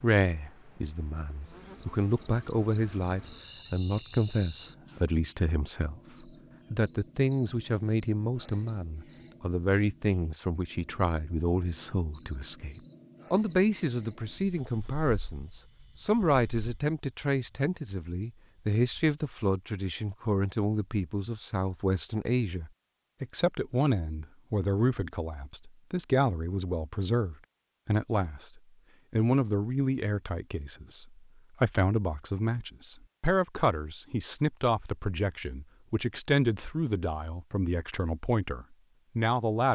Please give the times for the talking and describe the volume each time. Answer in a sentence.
You can hear the talking from 0.0 to 39.7 s, at a steady volume.